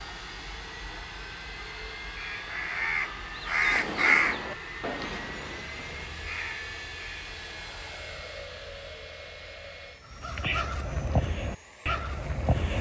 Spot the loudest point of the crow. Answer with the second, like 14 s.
4 s.